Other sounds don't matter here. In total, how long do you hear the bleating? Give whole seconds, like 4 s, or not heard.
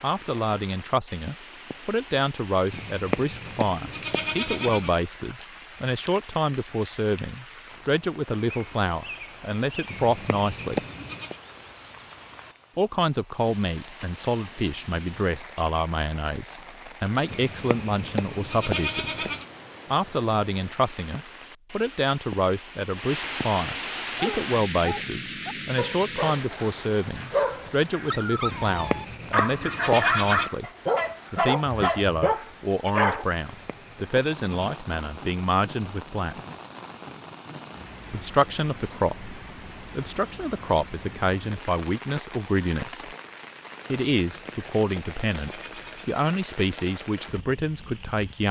11 s.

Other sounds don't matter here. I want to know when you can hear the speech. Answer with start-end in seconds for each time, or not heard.
0.0-10.8, 12.8-19.2, 19.9-30.6, 31.3-36.4, 38.1-43.1, 43.9-48.4.